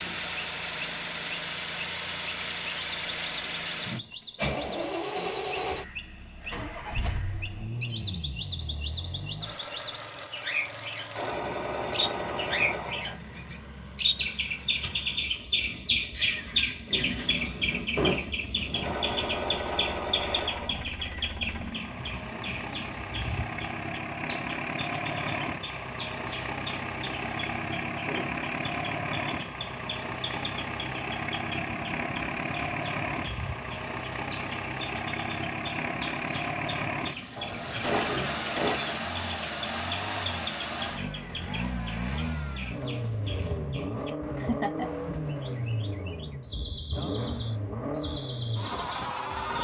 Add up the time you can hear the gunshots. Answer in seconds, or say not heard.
6 s.